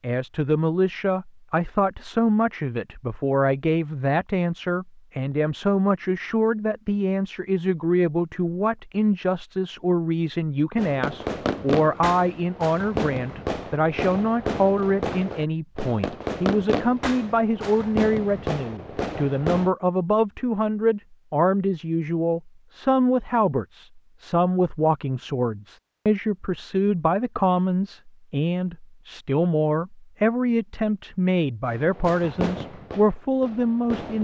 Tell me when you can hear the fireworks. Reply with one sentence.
The fireworks can be heard from 10.8 to 19.7 s and from 31.6 to 34.1 s.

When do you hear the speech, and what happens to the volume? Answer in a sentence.
The speech can be heard from 0.0 to 34.1 s, at a steady volume.